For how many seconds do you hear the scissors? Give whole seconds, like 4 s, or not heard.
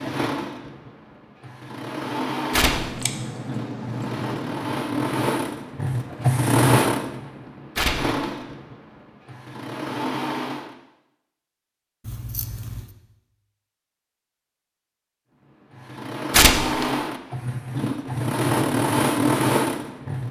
3 s.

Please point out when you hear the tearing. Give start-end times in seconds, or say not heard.
2.5-3.0, 7.8-8.2, 16.3-16.9.